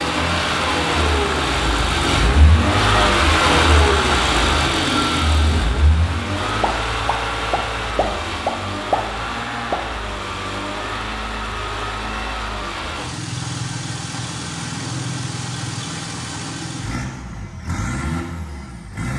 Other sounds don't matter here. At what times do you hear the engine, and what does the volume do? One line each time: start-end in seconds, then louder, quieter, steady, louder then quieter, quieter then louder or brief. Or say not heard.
0.0-19.1 quieter.